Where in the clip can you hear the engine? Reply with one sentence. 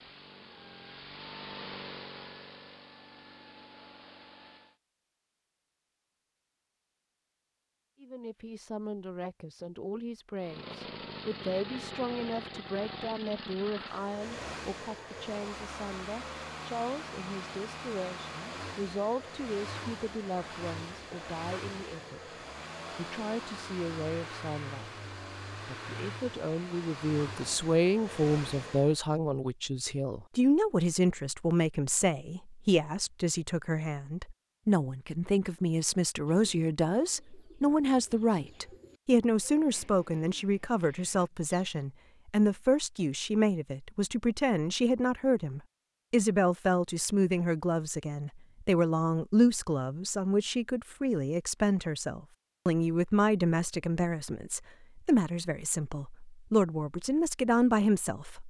The engine can be heard from 0.0 to 4.8 s and from 10.3 to 29.0 s.